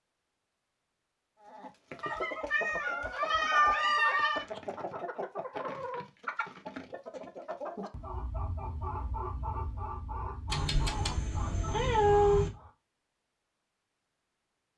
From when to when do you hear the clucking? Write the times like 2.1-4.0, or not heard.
1.4-12.7.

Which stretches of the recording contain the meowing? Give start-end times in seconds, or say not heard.
2.0-4.5, 10.5-12.5.